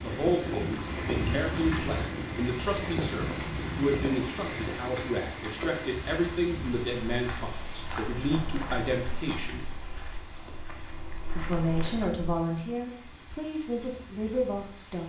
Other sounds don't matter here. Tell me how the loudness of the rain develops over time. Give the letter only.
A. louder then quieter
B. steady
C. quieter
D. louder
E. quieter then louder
C.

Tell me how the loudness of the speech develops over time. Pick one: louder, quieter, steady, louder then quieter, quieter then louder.
steady.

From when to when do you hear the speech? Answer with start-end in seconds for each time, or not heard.
0.0-9.7, 11.3-15.0.